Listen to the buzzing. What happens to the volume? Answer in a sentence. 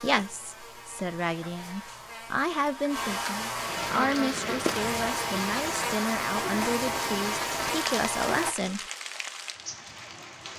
The loudness of the buzzing goes up.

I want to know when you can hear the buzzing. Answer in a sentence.
The buzzing can be heard from 0.0 to 8.6 s.